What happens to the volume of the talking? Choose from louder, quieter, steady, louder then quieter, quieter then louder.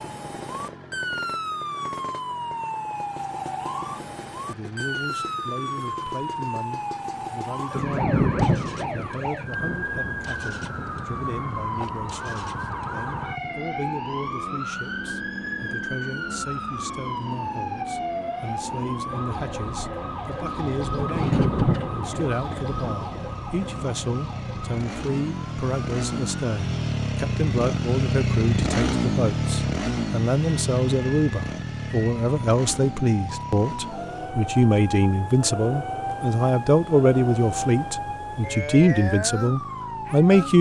louder.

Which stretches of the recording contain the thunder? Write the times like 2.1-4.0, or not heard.
7.8-10.9, 20.9-24.1.